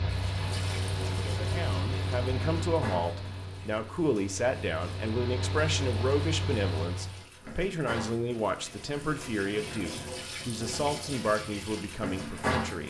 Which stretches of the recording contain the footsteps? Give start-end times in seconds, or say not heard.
not heard.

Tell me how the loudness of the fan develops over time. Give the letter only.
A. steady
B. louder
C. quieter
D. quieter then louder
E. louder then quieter
D.